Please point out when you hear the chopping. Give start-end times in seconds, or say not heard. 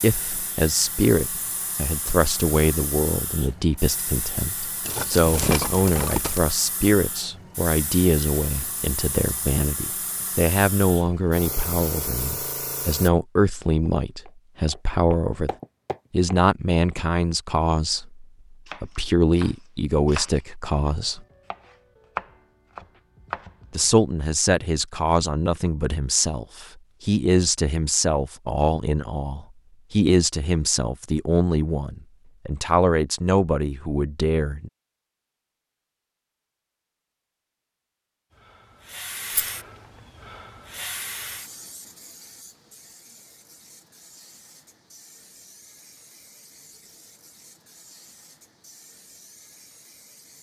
18.6-23.9.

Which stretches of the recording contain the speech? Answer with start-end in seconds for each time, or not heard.
0.0-15.5, 16.1-21.2, 23.7-34.7.